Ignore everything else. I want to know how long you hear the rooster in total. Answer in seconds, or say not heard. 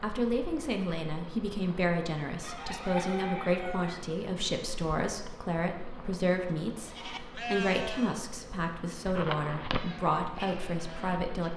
2 s.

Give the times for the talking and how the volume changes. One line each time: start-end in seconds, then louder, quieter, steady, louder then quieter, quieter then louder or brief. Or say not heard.
0.0-11.5 steady.